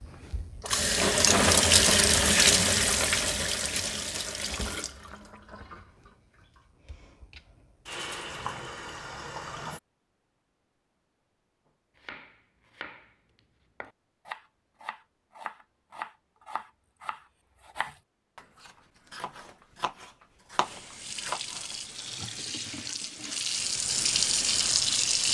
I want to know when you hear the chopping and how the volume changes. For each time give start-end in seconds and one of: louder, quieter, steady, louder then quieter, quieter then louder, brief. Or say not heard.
11.9-21.8 louder.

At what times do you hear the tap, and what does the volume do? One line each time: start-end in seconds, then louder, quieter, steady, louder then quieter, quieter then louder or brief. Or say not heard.
0.0-9.8 quieter then louder
20.6-25.2 louder.